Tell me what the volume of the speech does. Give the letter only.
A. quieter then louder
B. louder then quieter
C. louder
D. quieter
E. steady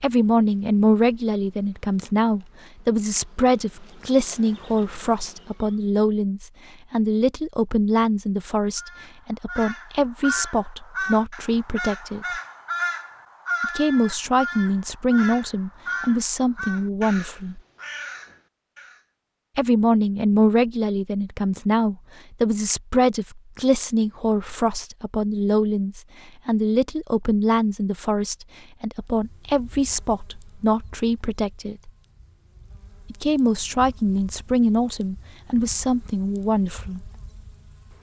E.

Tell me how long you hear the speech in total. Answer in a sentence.
The speech can be heard for 33 seconds in total.